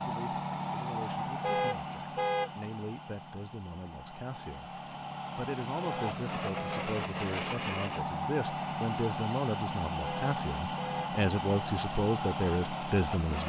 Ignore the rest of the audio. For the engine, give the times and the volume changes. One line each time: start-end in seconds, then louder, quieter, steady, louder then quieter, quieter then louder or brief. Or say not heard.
0.0-13.4 quieter then louder.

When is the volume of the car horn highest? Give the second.
2 s.